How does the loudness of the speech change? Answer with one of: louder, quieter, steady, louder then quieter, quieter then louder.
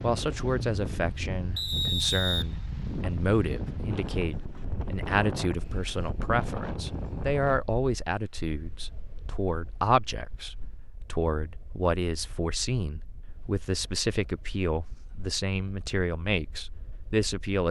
steady.